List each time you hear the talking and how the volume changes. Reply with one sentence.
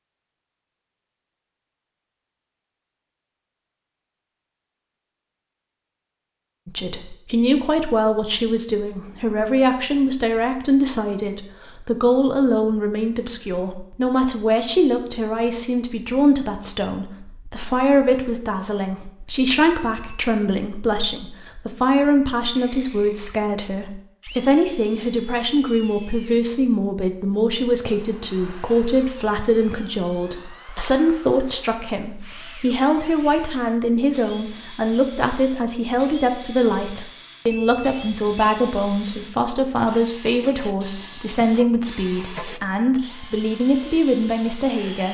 You can hear the talking from 6.7 to 45.0 s, at a steady volume.